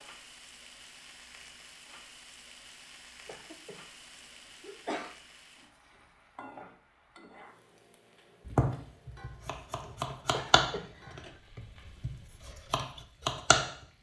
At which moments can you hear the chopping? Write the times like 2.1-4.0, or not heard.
8.4-13.7.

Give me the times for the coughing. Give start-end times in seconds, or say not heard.
3.2-5.2, 10.3-11.4.